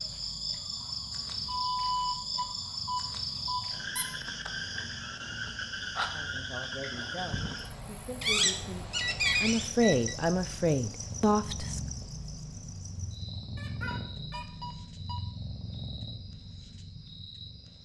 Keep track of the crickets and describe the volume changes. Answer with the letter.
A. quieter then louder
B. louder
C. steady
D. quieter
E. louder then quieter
D.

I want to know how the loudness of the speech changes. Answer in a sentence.
The volume of the speech goes up.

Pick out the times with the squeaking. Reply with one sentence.
The squeaking can be heard from 8.2 to 9.7 s and from 13.6 to 14.4 s.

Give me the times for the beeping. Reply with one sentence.
You can hear the beeping from 1.4 to 3.7 s, from 8.3 to 10.2 s and from 13.8 to 15.2 s.